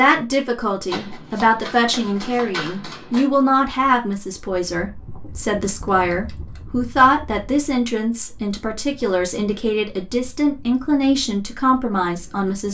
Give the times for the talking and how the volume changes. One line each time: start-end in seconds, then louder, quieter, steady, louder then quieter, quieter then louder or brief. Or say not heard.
0.0-12.6 steady.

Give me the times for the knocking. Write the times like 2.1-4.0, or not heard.
not heard.